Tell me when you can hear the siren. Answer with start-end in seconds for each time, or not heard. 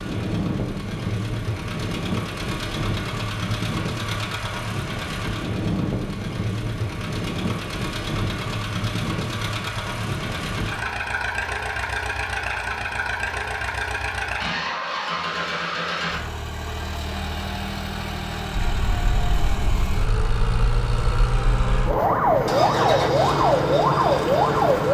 18.5-24.8.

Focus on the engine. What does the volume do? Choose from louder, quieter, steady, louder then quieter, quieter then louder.
steady.